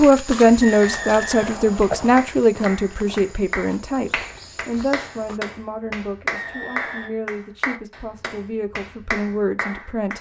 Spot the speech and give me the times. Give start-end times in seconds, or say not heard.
0.0-10.1.